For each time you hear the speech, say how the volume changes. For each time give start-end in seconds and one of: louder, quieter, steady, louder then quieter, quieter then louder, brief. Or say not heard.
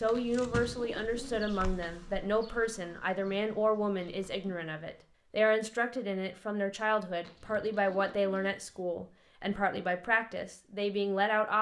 0.0-11.5 steady.